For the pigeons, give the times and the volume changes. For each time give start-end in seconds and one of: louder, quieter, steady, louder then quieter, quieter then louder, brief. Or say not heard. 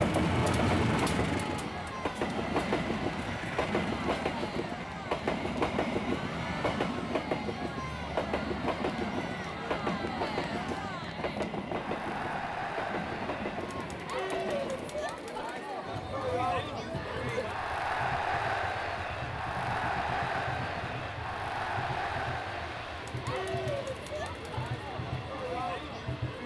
not heard.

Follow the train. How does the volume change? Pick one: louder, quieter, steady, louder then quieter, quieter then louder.
quieter.